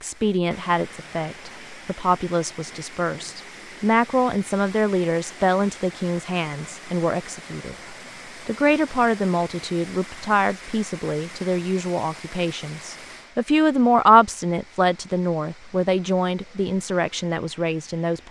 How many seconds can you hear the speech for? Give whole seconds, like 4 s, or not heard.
18 s.